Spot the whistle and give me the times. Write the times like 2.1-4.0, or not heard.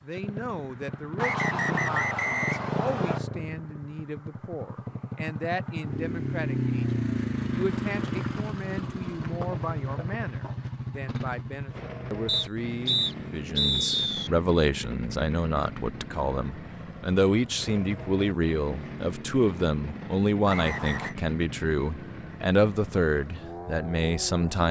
1.1-3.2, 12.2-14.3, 20.4-21.1.